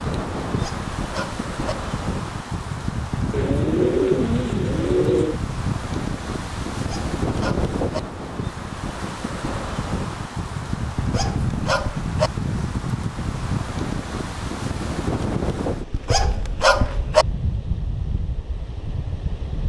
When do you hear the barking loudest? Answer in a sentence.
The volume of the barking peaks at 17 seconds.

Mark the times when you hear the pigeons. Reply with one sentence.
The pigeons can be heard from 3.3 to 5.4 s.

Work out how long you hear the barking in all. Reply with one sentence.
You can hear the barking for 5 seconds altogether.